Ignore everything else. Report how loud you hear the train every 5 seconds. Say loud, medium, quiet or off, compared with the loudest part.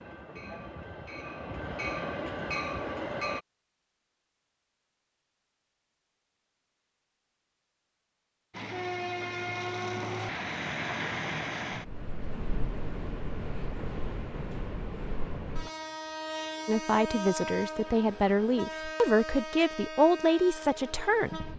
loud, loud, loud, loud, medium.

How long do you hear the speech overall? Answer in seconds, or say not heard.
5 s.